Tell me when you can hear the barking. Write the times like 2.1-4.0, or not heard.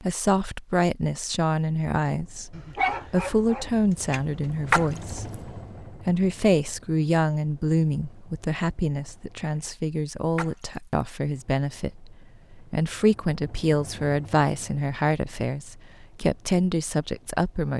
2.5-4.7.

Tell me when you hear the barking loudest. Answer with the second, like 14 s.
3 s.